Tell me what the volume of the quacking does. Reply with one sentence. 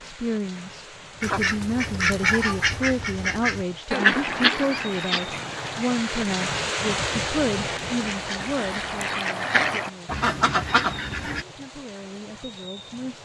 The loudness of the quacking goes down, then up.